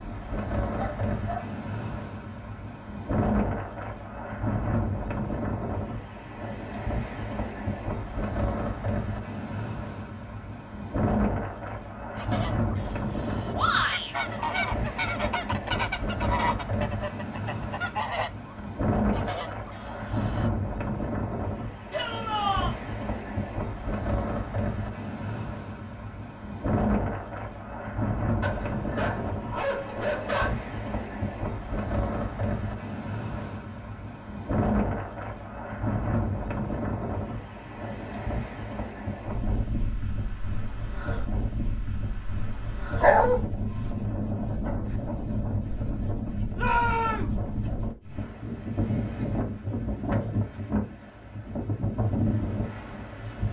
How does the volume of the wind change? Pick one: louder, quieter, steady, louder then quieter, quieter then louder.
steady.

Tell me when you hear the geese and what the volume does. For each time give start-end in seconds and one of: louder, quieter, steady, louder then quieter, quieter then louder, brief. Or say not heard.
12.2-20.5 louder then quieter.